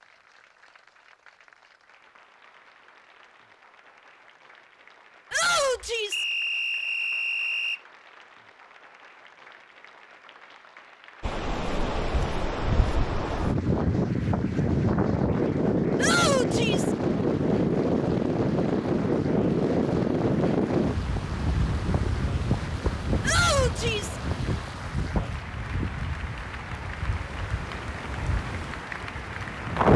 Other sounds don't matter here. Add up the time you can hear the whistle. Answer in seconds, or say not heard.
2 s.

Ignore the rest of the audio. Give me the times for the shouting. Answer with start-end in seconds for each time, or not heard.
5.3-6.2, 15.9-16.9, 23.2-24.1.